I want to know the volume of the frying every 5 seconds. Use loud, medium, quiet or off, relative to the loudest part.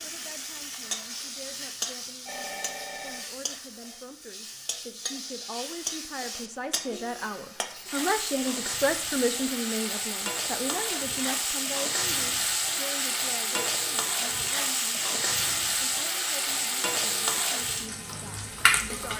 medium, medium, loud, loud.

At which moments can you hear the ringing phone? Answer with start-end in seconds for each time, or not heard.
2.2-3.2.